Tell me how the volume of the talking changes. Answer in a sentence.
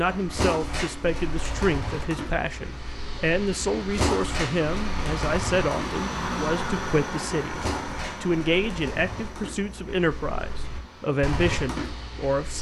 The loudness of the talking stays about the same.